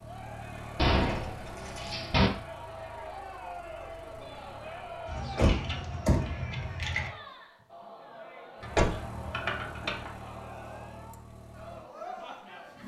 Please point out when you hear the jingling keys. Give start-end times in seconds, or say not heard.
0.9-1.9, 5.1-7.1, 8.6-10.1.